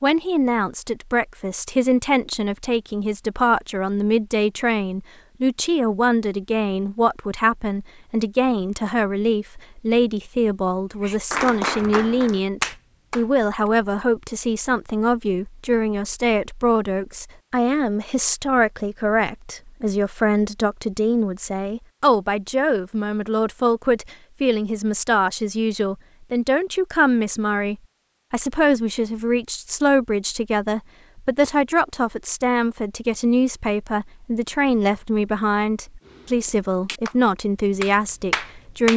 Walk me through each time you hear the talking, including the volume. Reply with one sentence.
You can hear the talking from 0.0 to 38.9 s, at a steady volume.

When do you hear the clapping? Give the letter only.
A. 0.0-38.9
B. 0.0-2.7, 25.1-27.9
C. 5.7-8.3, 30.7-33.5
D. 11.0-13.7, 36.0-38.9
D.